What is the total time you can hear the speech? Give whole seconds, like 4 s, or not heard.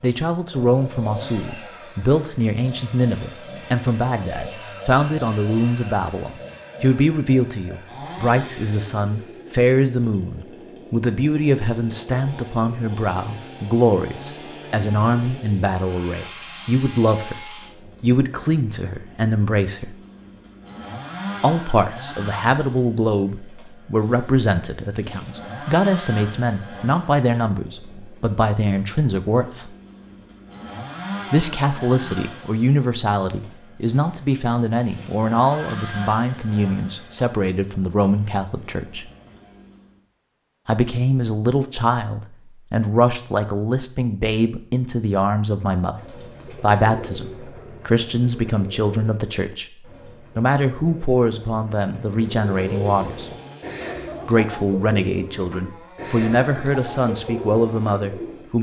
52 s.